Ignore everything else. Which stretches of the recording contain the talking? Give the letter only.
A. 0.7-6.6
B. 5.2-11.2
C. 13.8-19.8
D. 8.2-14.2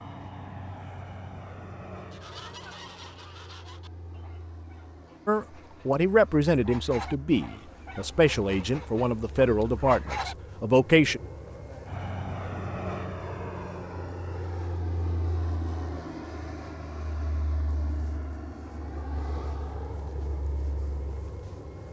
B.